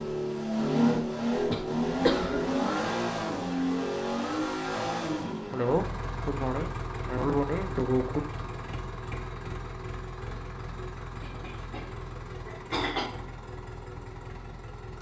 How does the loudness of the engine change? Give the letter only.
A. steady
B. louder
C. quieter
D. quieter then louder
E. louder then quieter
C.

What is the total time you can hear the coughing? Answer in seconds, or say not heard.
6 s.